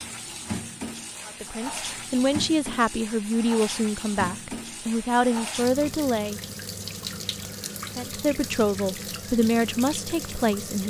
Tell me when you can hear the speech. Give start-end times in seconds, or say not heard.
1.2-6.4, 8.0-10.8.